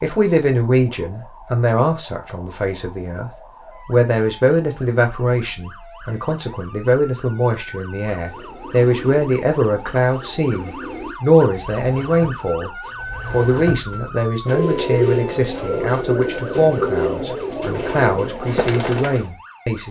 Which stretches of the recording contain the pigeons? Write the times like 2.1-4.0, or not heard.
8.2-19.3.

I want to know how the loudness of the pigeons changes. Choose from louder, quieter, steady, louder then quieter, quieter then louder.
louder.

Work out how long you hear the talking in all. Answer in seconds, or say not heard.
20 s.